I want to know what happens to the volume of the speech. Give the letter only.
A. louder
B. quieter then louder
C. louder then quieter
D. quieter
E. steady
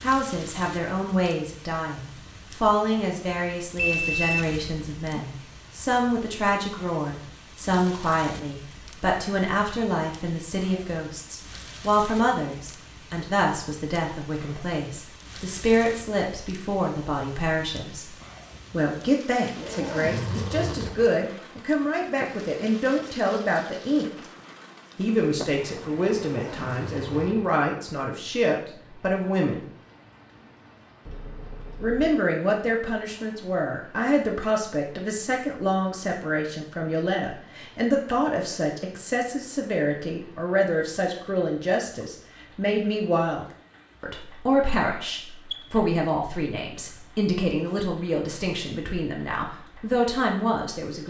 E.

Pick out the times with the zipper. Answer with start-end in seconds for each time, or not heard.
19.6-21.1, 26.2-27.5.